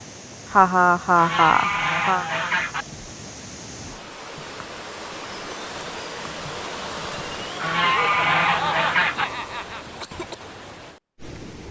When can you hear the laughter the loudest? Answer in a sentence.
The volume of the laughter peaks at 1 second.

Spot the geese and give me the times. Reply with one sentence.
You can hear the geese from 1.1 to 2.9 s and from 7.5 to 9.2 s.